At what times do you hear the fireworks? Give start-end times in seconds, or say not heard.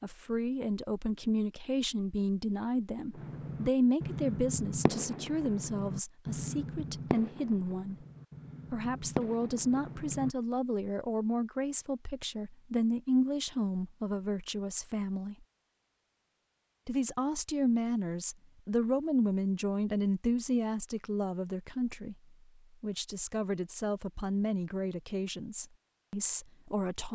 3.1-10.3.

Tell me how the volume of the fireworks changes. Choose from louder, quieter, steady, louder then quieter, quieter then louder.
quieter then louder.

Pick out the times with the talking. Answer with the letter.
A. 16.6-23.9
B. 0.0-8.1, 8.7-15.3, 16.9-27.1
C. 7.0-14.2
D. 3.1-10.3
B.